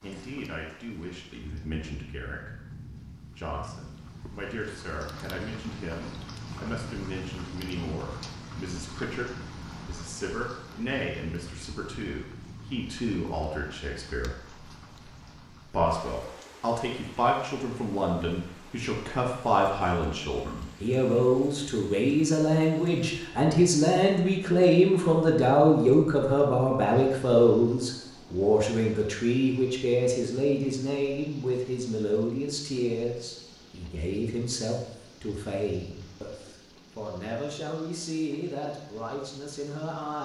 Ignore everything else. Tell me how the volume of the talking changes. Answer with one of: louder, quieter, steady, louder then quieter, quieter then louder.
louder then quieter.